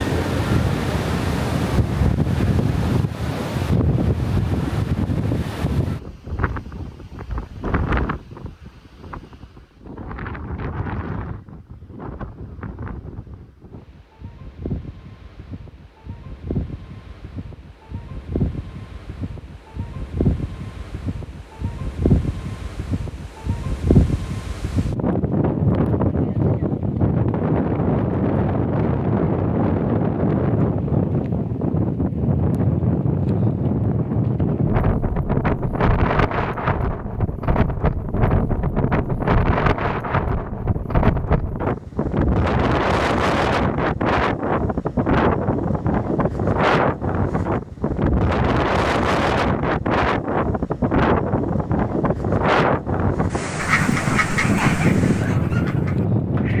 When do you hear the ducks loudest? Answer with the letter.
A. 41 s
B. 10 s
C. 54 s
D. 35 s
C.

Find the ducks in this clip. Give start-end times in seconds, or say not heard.
53.5-56.5.